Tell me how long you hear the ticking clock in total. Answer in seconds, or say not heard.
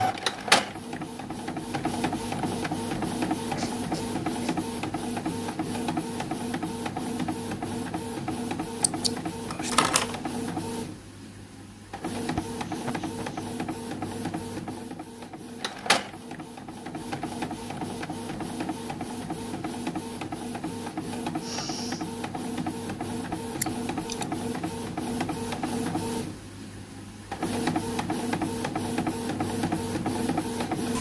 not heard.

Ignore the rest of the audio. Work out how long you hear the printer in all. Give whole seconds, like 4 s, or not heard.
31 s.